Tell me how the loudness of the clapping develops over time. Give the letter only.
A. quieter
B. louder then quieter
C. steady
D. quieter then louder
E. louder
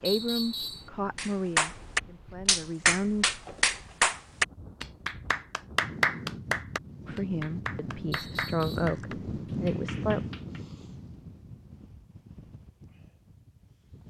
A.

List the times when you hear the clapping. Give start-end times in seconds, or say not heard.
1.1-10.6.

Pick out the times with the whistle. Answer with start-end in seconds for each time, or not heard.
0.1-0.9, 8.1-8.9.